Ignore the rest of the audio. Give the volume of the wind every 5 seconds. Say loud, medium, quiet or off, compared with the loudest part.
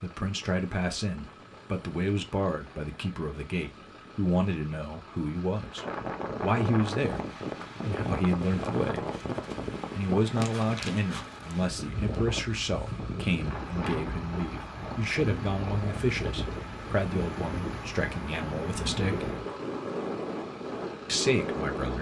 quiet, loud, loud, loud, loud.